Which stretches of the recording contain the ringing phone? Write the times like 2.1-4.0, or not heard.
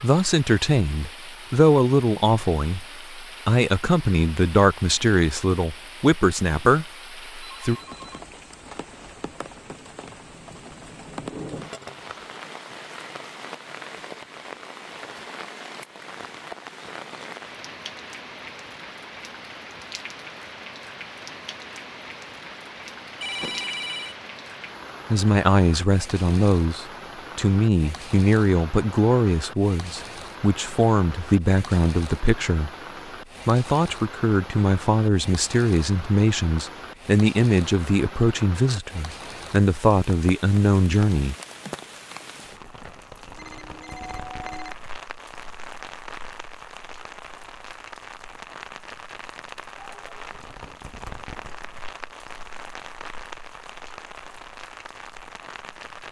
7.4-9.2, 23.2-24.1, 43.4-44.8.